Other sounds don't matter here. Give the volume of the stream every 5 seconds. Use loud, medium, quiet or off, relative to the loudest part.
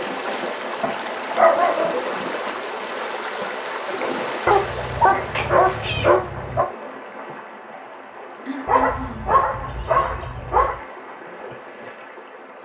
loud, medium, medium.